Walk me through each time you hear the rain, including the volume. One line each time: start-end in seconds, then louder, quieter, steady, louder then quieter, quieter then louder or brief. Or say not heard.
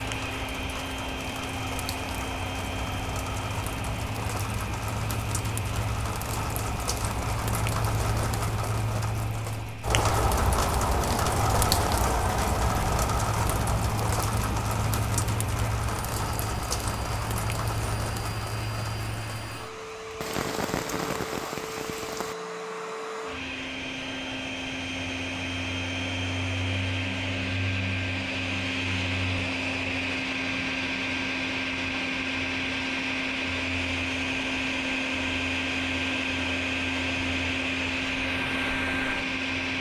0.0-22.4 louder then quieter.